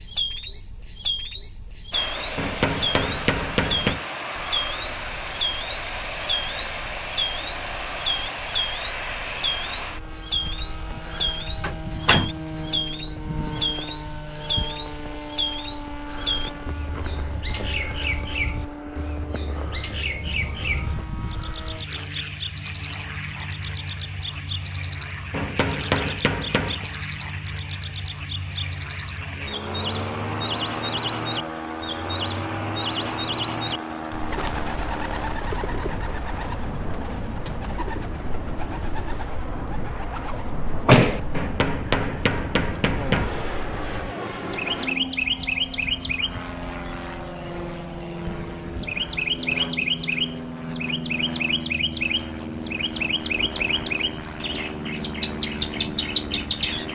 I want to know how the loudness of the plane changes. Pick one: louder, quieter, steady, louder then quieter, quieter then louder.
steady.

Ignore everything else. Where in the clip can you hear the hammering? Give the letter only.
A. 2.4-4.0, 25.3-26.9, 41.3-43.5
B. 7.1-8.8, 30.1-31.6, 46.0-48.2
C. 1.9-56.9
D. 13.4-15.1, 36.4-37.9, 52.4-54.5
A.